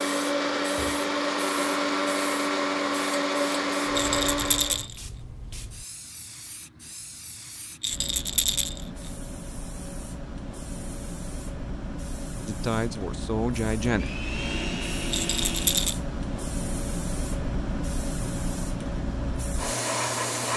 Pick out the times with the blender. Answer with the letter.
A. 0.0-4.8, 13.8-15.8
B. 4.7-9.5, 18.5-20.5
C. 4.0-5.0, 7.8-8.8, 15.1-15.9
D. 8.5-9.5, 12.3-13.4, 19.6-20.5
A.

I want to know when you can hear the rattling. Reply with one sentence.
You can hear the rattling from 4.0 to 5.0 s, from 7.8 to 8.8 s and from 15.1 to 15.9 s.